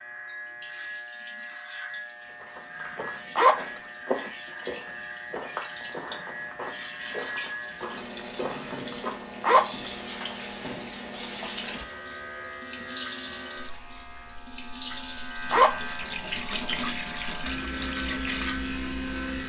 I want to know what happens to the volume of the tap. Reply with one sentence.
The loudness of the tap goes up.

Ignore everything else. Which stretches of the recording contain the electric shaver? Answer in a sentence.
You can hear the electric shaver from 0.0 to 19.4 s.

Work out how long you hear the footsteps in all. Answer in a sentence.
You can hear the footsteps for 7 seconds altogether.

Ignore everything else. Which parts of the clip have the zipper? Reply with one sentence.
You can hear the zipper from 3.4 to 3.9 s, from 9.4 to 9.8 s and from 15.5 to 16.1 s.